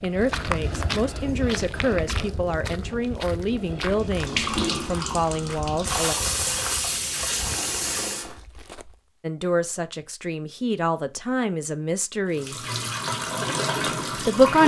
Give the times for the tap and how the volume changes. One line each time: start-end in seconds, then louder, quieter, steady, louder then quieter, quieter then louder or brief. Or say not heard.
4.0-8.4 quieter then louder
12.3-14.6 brief.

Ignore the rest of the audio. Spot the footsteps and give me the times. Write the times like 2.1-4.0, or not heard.
0.0-9.1.